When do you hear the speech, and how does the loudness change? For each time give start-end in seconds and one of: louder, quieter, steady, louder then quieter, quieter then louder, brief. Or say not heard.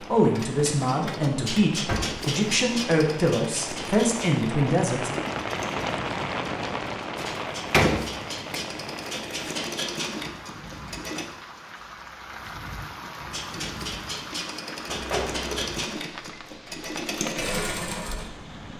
0.0-5.1 steady.